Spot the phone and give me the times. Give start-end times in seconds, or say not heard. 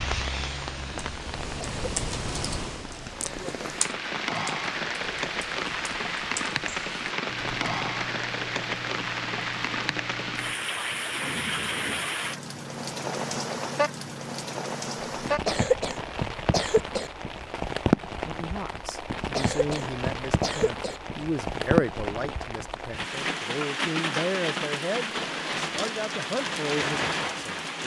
not heard.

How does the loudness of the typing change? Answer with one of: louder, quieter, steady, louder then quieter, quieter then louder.
quieter.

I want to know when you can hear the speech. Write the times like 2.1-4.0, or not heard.
18.2-27.8.